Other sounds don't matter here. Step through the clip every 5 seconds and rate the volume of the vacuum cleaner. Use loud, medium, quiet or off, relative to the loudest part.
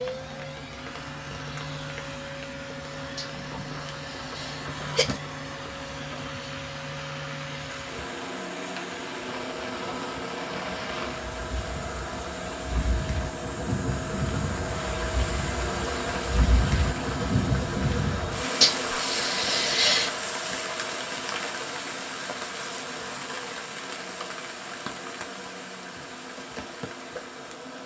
loud, loud, loud, loud, medium, medium.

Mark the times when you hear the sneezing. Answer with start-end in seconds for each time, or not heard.
3.1-5.2, 18.6-20.1.